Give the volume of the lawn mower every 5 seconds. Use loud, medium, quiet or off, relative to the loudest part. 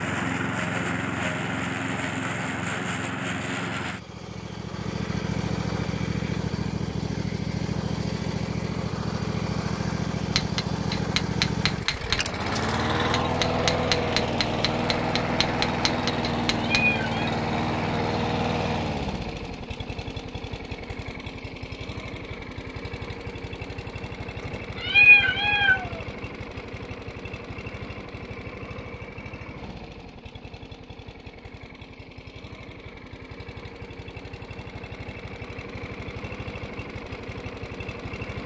loud, loud, loud, loud, medium, medium, quiet, medium.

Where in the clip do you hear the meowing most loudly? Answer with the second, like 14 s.
25 s.